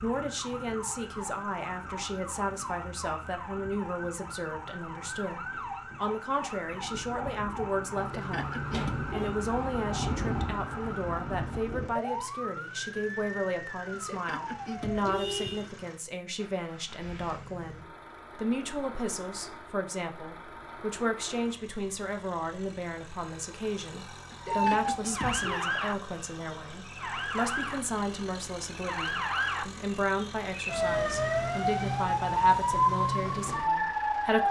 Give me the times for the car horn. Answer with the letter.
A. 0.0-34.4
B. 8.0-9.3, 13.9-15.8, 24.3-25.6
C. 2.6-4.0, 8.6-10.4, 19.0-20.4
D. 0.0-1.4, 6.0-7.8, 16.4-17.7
B.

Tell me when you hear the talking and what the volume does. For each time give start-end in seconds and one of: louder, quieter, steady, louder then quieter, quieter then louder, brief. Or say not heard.
0.0-34.4 steady.